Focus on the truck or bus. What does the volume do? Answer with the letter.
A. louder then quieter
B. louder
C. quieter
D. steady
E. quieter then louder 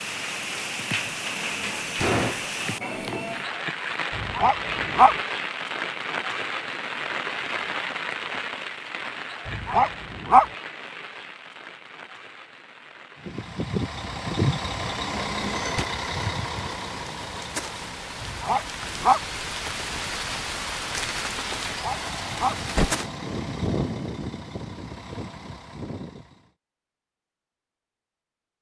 E.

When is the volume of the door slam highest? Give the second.
2 s.